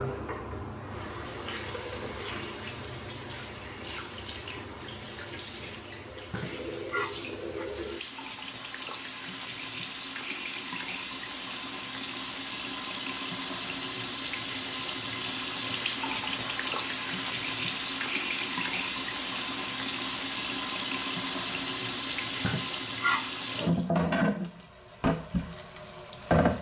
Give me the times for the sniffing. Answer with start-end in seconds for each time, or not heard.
6.3-7.7, 22.4-23.3.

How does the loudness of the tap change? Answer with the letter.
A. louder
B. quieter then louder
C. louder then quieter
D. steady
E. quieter
A.